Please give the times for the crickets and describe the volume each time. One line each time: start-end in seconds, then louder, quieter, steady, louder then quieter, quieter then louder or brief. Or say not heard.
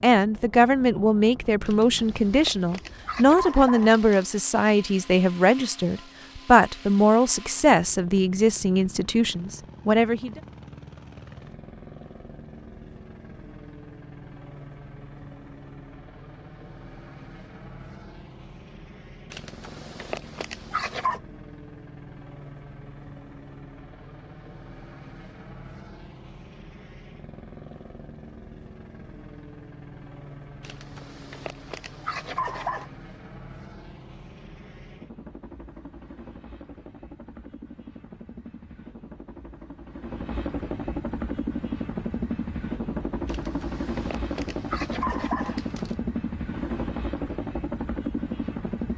not heard.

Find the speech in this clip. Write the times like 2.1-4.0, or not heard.
0.0-10.4.